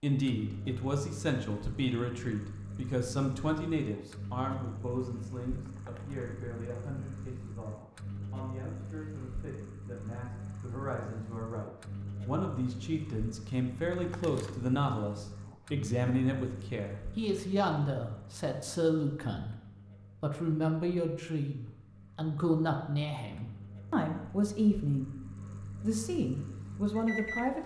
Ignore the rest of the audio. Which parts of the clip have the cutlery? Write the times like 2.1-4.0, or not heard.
not heard.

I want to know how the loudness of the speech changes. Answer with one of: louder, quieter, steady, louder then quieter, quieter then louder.
quieter then louder.